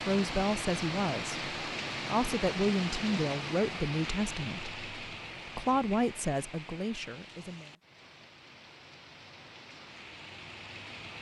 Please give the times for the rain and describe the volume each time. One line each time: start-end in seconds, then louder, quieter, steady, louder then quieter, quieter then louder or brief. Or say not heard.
0.0-11.1 quieter.